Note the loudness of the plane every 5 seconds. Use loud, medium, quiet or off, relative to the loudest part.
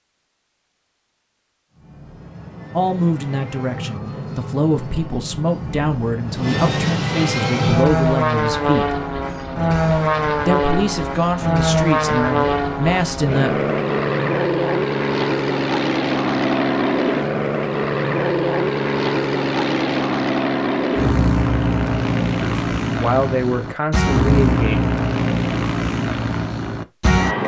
quiet, loud, loud, loud, loud, loud.